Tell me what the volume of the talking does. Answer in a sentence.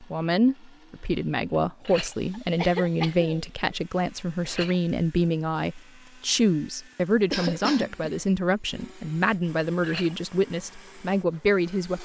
The loudness of the talking stays about the same.